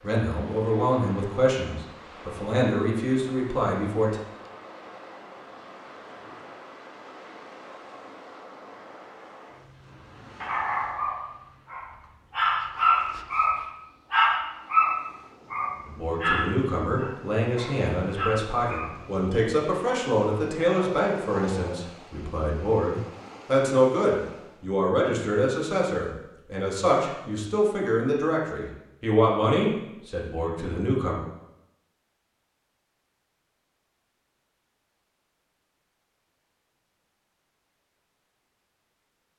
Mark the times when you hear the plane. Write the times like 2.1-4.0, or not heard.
not heard.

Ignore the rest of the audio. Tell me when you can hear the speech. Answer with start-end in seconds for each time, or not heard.
0.0-4.2, 15.8-31.1.